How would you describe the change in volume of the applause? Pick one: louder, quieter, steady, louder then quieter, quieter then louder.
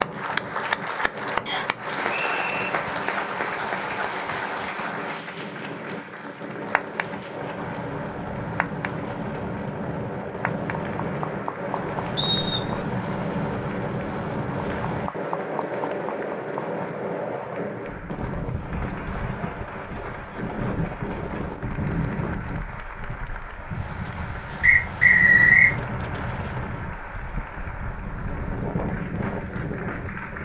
quieter.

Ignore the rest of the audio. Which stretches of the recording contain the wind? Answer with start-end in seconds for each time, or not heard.
0.0-30.4.